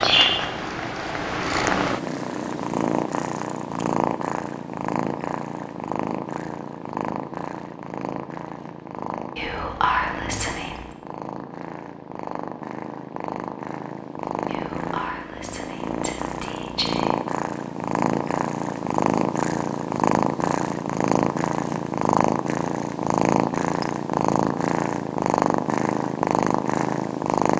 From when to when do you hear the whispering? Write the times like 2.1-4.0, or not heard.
9.3-10.8, 14.4-17.1.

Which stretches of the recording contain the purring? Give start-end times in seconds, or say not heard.
0.0-27.5.